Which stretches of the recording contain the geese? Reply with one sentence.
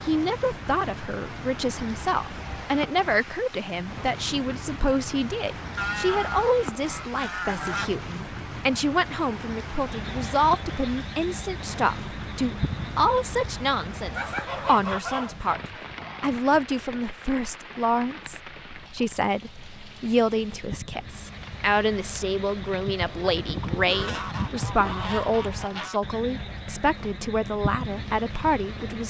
The geese can be heard from 5.8 to 8.0 s, from 14.1 to 15.9 s and from 23.2 to 26.0 s.